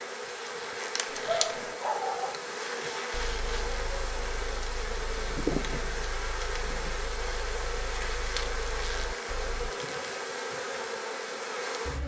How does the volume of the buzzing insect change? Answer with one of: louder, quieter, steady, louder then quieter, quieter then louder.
steady.